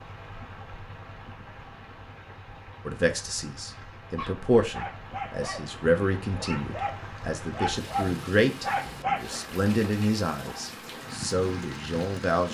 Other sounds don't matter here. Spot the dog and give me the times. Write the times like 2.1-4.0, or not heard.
4.0-9.4.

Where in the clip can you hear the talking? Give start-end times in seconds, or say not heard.
2.9-12.4.